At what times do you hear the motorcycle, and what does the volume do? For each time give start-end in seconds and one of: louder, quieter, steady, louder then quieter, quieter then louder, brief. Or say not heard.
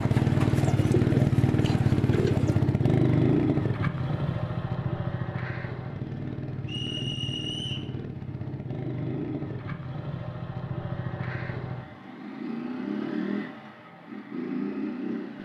0.0-15.4 quieter.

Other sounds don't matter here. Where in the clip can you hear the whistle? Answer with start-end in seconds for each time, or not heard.
6.7-7.9.